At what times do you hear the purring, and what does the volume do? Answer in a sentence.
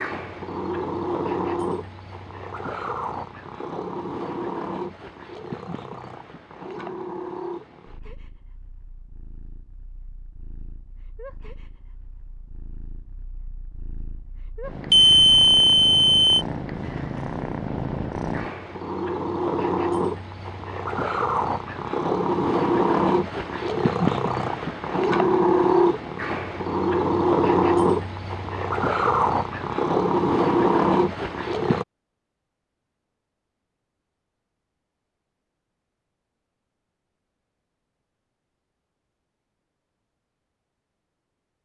You can hear the purring from 0.0 to 31.9 s, getting quieter then louder.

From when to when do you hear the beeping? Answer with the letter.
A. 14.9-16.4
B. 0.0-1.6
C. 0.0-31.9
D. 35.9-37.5
A.